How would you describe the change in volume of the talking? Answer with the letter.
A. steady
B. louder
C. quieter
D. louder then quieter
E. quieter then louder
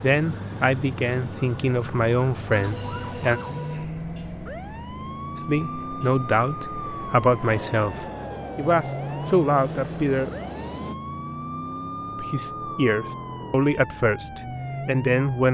A.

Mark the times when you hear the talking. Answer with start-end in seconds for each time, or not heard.
0.0-3.4, 5.5-10.3, 12.2-15.4.